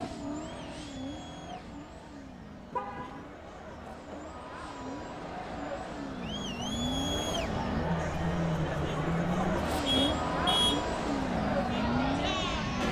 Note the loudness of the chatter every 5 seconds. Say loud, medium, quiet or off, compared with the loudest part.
quiet, loud, loud.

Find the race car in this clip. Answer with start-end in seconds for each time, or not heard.
0.0-12.8.